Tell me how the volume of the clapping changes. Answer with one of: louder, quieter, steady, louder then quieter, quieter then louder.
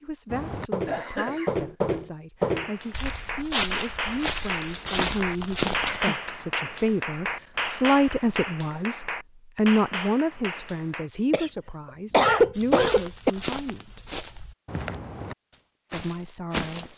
steady.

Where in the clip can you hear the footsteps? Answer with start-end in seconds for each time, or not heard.
0.3-6.0, 12.6-16.9.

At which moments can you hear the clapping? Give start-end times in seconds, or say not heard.
2.5-11.1.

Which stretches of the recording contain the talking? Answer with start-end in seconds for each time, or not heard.
0.0-14.0, 15.9-16.9.